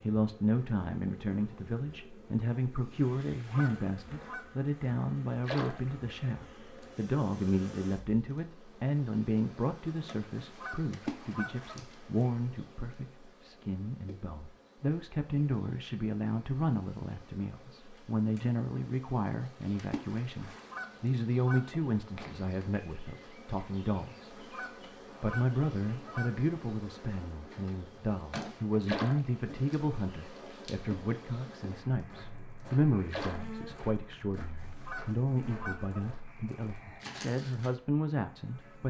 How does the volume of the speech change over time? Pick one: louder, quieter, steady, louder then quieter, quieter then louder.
steady.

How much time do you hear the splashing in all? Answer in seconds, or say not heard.
4 s.